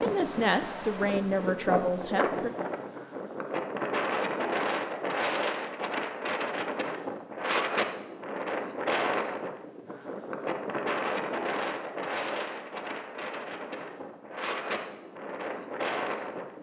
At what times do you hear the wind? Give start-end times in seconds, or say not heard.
0.0-16.5.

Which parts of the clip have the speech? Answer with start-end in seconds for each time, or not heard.
0.0-2.5.